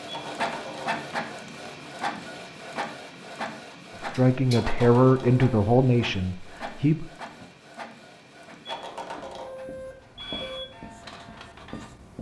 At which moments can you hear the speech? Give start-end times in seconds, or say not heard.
4.0-7.0.